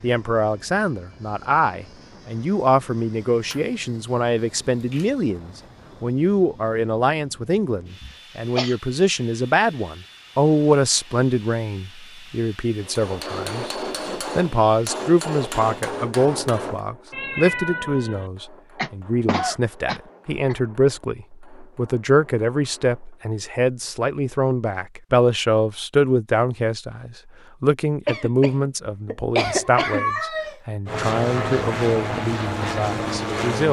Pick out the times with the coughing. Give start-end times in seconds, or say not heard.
8.0-8.8, 18.8-20.6, 28.1-30.1.